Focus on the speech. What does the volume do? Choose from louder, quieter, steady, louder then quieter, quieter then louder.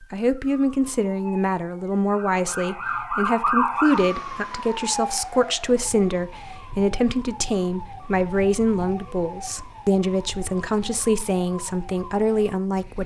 steady.